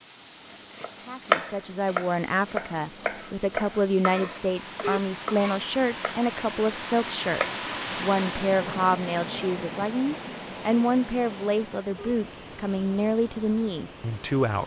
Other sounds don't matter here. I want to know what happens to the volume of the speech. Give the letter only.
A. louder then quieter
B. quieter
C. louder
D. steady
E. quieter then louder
D.